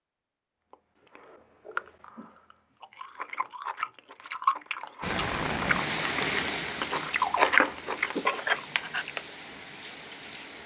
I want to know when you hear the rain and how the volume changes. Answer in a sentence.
The rain can be heard from 5.0 to 10.6 s, getting quieter.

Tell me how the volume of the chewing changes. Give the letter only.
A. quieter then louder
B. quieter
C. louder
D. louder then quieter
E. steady
C.